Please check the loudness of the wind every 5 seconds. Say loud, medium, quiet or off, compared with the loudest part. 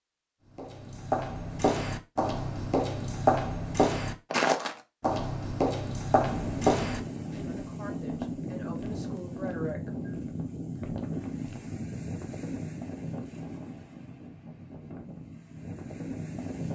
off, loud, loud, loud.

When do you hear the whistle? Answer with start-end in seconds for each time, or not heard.
not heard.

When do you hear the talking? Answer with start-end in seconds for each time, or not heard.
7.4-9.9.